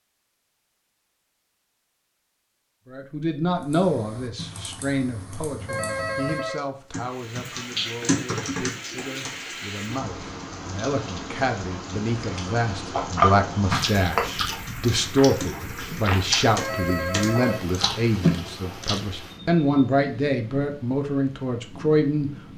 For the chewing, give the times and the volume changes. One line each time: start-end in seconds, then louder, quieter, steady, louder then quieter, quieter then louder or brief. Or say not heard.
12.2-19.1 quieter then louder.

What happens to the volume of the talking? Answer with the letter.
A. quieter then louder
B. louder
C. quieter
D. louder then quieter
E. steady
A.